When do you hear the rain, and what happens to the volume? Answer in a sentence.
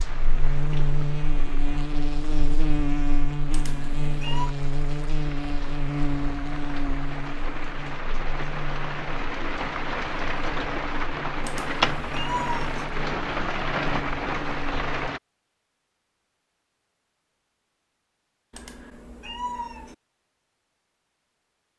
The rain can be heard from 0.0 to 15.2 s, getting louder.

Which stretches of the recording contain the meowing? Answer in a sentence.
You can hear the meowing from 3.5 to 4.5 s, from 11.4 to 12.8 s and from 18.5 to 19.9 s.